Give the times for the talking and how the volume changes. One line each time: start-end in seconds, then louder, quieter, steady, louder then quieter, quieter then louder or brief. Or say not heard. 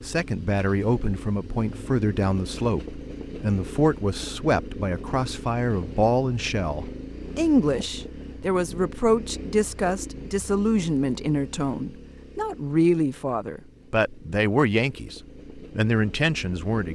0.0-16.8 steady.